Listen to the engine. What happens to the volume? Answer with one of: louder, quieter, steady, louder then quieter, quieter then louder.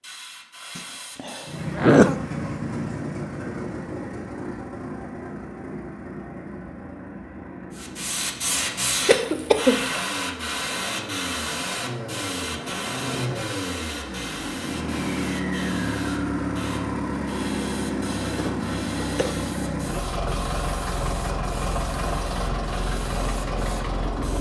quieter then louder.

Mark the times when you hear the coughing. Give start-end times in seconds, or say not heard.
0.8-2.1, 9.1-10.1, 18.2-19.4.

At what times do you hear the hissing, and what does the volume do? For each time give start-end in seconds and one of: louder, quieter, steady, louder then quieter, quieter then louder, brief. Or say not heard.
0.0-1.8 brief
7.8-24.3 quieter.